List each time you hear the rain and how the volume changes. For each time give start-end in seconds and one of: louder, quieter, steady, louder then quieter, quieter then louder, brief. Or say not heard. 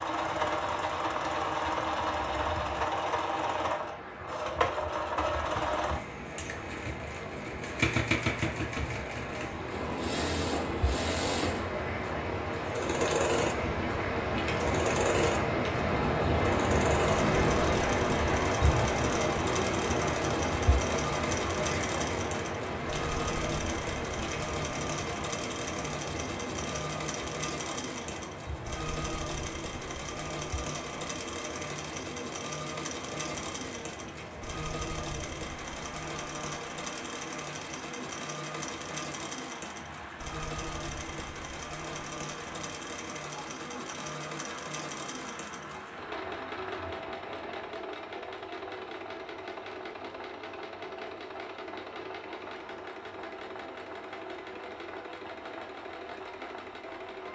0.0-47.8 louder then quieter.